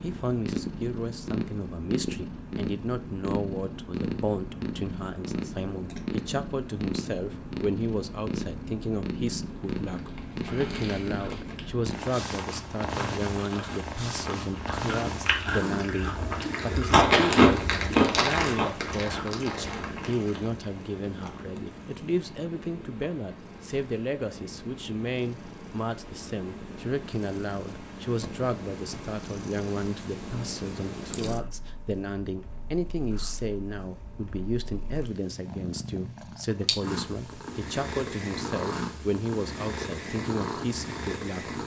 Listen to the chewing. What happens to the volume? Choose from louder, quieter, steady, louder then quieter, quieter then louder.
louder then quieter.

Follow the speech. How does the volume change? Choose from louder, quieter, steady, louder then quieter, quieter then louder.
steady.